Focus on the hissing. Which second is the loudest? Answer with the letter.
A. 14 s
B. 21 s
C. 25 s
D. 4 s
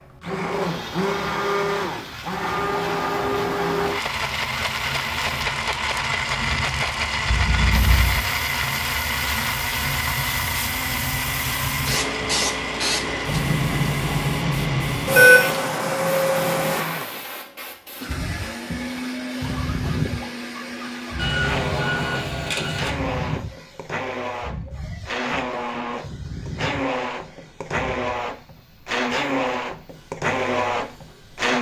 A.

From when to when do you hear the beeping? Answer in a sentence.
The beeping can be heard from 7.2 to 8.3 s, from 15.1 to 16.8 s and from 21.1 to 22.9 s.